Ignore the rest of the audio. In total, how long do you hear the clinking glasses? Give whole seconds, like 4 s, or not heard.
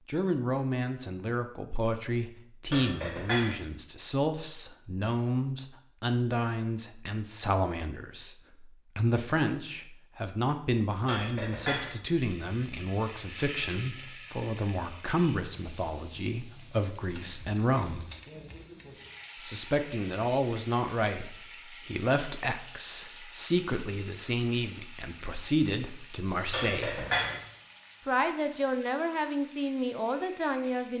3 s.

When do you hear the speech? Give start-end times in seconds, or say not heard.
0.1-18.1, 19.4-27.1, 28.1-30.9.